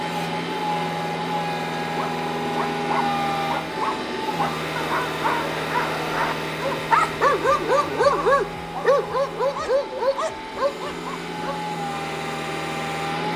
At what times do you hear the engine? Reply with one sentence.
The engine can be heard from 0.0 to 13.3 s.